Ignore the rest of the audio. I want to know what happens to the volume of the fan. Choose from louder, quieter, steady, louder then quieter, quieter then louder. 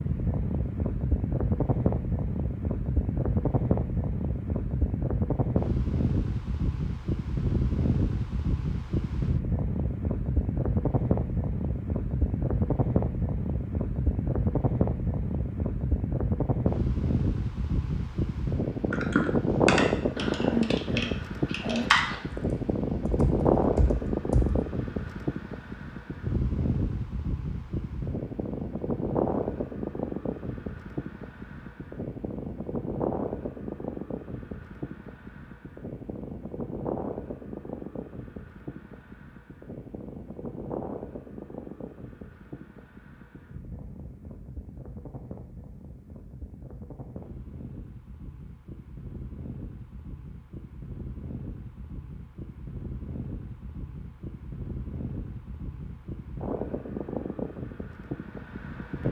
quieter.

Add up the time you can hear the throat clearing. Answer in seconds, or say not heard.
2 s.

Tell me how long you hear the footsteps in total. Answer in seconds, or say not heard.
not heard.